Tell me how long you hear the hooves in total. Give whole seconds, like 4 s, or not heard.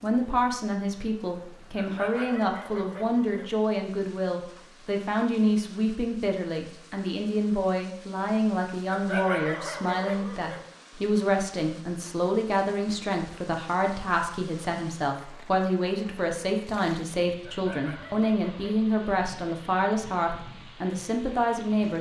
not heard.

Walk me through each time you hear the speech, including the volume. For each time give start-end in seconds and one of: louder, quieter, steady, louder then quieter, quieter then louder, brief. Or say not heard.
0.0-21.9 steady.